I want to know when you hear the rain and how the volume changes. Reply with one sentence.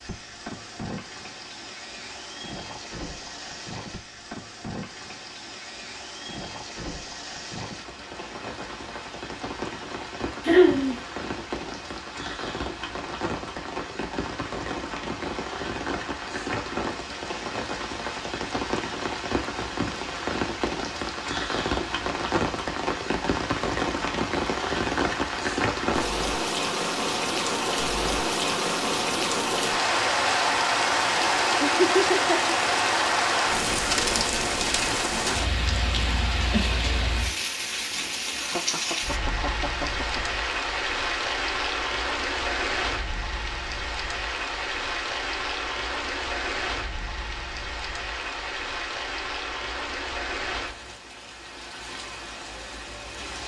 The rain can be heard from 0.0 to 53.4 s, getting louder then quieter.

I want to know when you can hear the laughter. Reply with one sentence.
You can hear the laughter from 10.4 to 11.0 s, from 31.6 to 32.5 s and from 38.4 to 40.4 s.